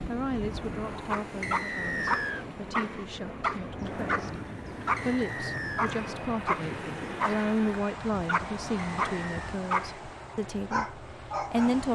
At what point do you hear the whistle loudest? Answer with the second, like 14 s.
2 s.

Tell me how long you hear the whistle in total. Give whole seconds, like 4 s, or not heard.
3 s.